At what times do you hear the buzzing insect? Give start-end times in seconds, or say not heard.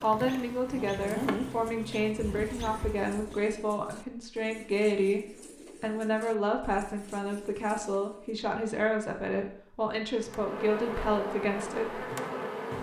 0.0-3.4, 10.2-12.7.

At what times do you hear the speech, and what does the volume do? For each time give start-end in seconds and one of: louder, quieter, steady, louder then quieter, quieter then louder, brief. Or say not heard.
0.0-12.1 steady.